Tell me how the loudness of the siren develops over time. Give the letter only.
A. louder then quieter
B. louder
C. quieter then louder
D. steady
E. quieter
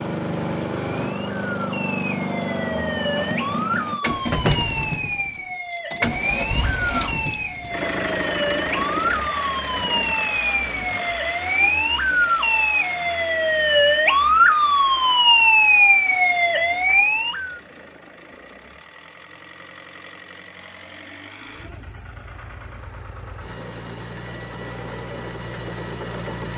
B.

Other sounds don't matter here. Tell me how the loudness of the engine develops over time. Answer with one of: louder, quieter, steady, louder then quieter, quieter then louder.
quieter then louder.